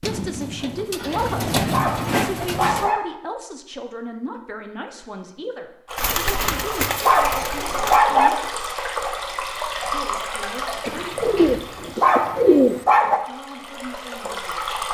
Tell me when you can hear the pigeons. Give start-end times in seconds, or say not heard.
0.0-2.9, 6.0-8.0, 10.8-12.8.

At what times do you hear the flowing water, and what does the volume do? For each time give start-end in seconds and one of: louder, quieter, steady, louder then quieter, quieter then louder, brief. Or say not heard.
5.8-14.8 quieter.